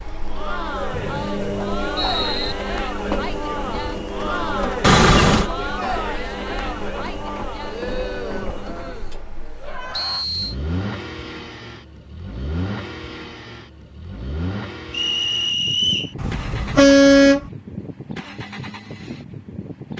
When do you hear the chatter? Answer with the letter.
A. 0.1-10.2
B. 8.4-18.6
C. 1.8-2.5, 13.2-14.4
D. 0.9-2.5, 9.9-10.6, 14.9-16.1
A.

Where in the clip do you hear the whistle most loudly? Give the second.
16 s.